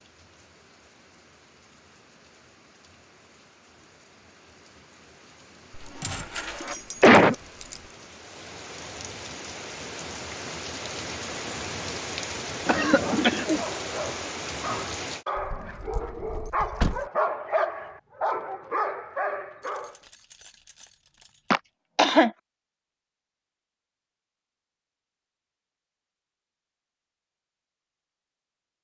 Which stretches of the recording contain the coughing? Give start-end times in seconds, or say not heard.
6.0-7.3, 12.7-13.6, 21.5-22.3.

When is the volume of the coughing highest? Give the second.
7 s.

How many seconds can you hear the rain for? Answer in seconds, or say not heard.
15 s.